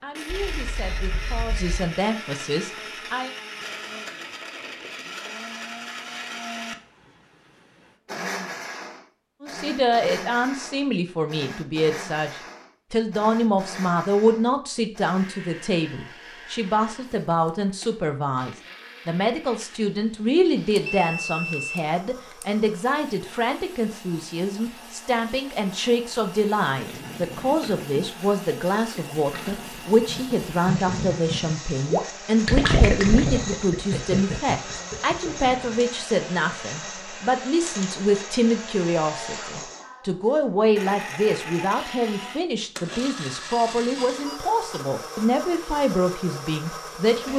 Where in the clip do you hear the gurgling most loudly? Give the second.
33 s.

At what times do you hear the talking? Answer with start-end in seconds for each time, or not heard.
0.0-3.3, 9.4-12.3, 12.9-47.3.